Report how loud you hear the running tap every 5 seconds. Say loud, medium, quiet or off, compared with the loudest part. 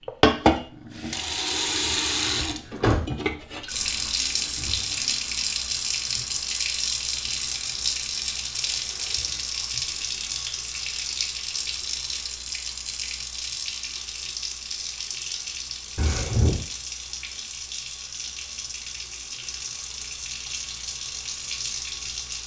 loud, loud, medium, medium, medium.